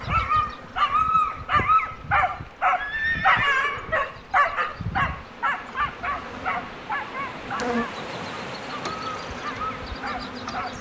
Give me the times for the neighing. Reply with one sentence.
You can hear the neighing from 2.8 to 4.0 s.